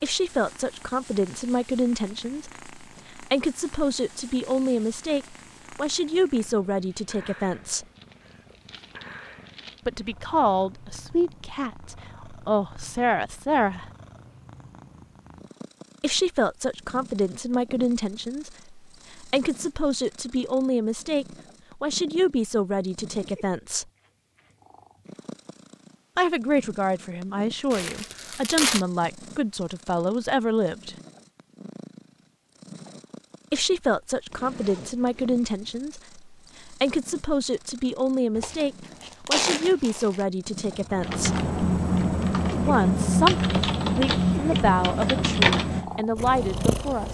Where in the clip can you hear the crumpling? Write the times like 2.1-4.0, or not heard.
8.0-9.8, 27.7-28.9, 38.4-40.2.